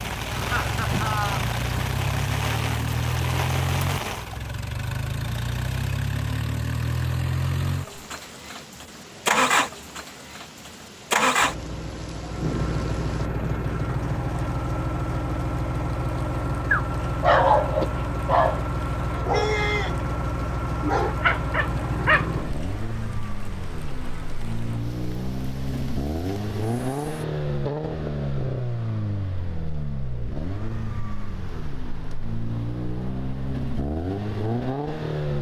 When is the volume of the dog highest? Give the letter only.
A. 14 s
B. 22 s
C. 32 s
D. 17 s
D.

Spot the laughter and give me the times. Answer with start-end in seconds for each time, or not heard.
0.3-1.5.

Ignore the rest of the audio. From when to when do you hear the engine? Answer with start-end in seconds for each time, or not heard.
0.0-35.3.